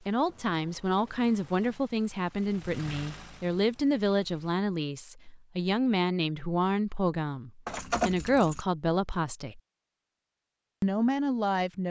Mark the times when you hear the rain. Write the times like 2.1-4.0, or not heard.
not heard.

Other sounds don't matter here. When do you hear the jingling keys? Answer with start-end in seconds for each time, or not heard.
0.2-1.7, 7.7-8.7.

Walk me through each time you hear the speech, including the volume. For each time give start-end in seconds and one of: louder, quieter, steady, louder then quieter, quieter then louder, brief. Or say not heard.
0.1-9.6 steady
10.8-11.8 brief.